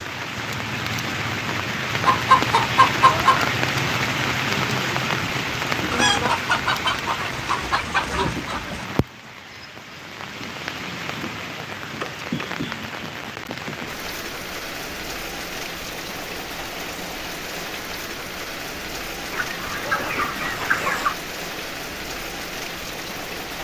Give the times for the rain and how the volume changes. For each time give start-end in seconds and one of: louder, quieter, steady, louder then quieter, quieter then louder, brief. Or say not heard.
0.0-23.5 quieter.